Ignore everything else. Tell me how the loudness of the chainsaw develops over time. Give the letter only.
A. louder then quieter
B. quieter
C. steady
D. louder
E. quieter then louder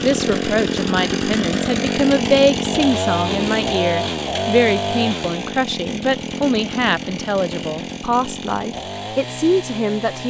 B.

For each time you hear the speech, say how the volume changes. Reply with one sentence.
The speech can be heard from 0.0 to 10.2 s, at a steady volume.